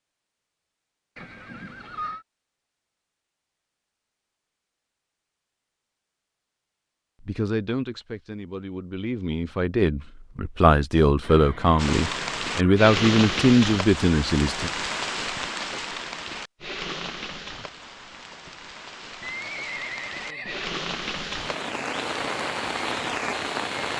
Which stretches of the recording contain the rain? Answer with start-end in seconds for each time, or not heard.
11.8-23.9.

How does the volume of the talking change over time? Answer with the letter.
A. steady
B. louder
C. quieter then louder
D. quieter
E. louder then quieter
B.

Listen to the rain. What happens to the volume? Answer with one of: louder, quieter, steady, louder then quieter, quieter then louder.
quieter then louder.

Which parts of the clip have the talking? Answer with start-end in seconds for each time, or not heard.
7.2-14.7.